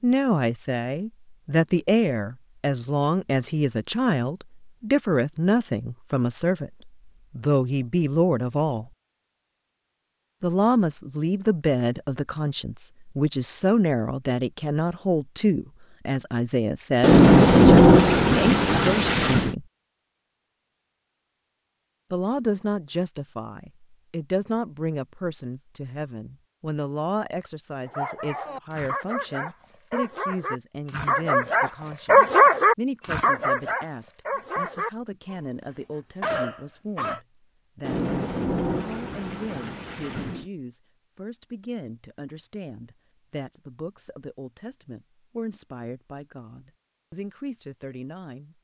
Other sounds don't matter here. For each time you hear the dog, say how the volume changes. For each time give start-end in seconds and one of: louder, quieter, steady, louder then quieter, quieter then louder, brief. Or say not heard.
27.9-37.2 louder then quieter.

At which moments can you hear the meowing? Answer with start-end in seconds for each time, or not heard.
not heard.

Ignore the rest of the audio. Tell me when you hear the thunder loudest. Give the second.
18 s.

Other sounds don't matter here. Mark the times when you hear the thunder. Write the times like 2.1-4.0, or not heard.
17.0-19.6, 37.8-40.5.